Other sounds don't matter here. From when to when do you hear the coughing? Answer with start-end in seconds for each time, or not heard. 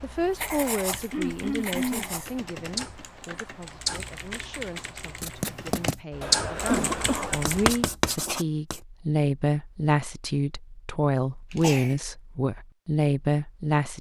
1.1-2.1, 6.2-7.4, 11.5-11.9.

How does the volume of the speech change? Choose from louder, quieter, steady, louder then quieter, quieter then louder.
quieter then louder.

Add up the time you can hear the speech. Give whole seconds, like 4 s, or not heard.
14 s.